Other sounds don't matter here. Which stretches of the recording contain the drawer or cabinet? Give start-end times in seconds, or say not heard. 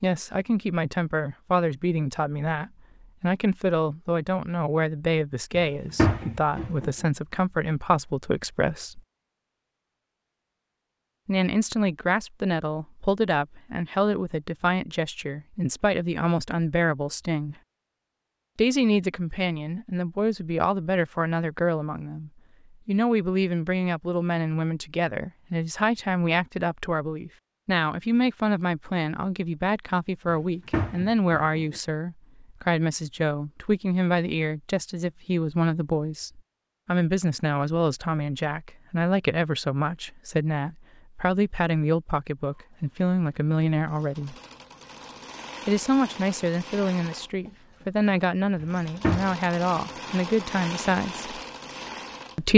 5.5-6.9, 30.2-31.8, 48.6-49.4.